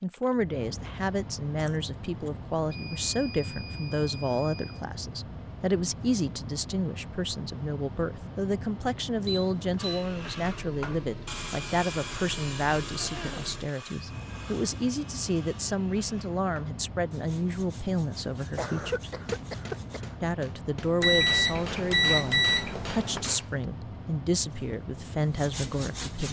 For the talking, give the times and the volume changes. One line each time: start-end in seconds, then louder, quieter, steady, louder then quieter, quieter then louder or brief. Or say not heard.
0.0-19.1 steady
20.2-26.2 steady.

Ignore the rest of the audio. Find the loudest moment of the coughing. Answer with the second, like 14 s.
19 s.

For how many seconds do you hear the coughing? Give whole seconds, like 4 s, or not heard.
3 s.